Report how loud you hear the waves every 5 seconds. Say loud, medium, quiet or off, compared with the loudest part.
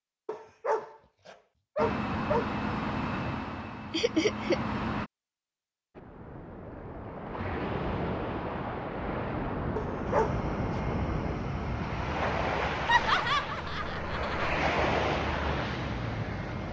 off, loud, loud, loud.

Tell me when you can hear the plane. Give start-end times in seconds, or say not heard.
1.8-5.1, 10.1-16.6.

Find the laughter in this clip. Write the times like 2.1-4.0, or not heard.
3.9-4.6, 12.8-14.6.